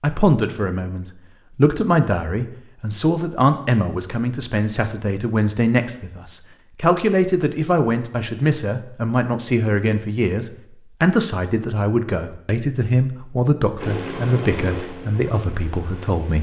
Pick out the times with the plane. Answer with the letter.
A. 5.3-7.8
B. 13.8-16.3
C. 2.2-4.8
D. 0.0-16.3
B.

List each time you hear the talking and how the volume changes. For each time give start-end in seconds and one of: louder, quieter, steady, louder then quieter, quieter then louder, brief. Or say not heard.
0.0-16.3 steady.